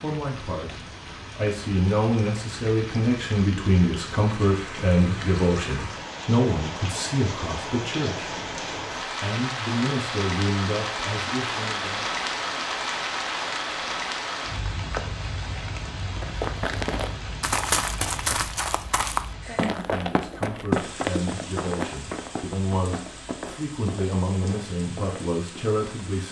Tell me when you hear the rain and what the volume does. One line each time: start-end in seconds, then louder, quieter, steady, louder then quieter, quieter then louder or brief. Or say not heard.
0.0-26.2 louder then quieter.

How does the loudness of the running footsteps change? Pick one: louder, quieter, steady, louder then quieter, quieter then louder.
quieter.